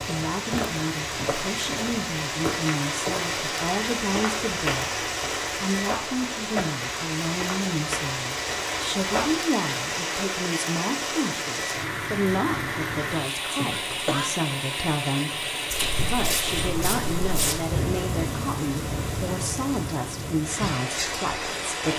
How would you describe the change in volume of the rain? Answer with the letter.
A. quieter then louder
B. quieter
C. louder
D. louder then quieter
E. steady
E.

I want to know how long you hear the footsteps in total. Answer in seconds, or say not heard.
11 s.